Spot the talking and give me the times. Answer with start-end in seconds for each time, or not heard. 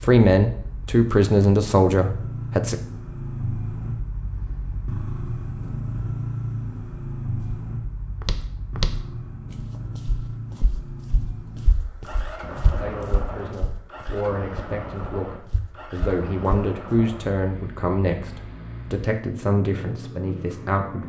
0.0-2.8, 12.8-21.0.